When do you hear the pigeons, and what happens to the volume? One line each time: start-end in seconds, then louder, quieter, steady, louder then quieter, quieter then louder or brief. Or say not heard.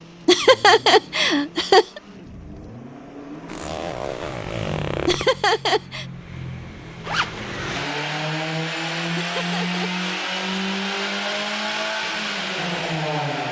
not heard.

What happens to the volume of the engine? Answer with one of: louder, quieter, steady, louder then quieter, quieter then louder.
louder.